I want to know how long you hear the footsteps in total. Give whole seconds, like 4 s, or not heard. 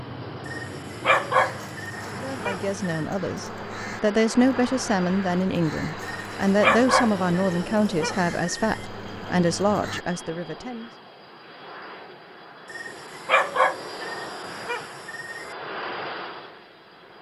not heard.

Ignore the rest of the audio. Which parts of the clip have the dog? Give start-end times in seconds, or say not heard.
0.5-3.0, 6.0-8.8, 12.7-15.4.